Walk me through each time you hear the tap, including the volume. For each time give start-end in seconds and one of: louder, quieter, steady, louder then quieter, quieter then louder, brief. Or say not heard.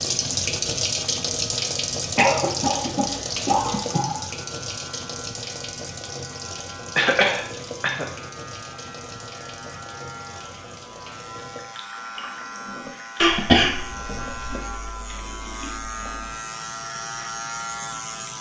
0.0-18.3 quieter.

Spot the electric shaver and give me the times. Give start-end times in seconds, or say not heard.
0.1-18.3.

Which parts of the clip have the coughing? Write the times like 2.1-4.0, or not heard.
2.1-4.2, 7.0-8.1, 13.2-14.6.